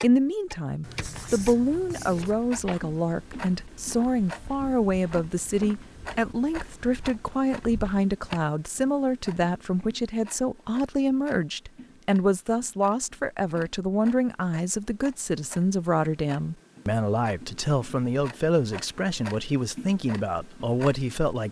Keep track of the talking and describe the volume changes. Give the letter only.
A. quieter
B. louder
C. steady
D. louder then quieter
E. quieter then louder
C.